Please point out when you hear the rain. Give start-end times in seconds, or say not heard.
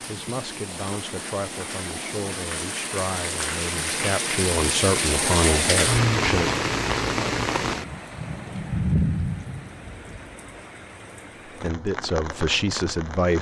0.0-13.3.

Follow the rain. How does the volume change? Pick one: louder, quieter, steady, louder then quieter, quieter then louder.
louder then quieter.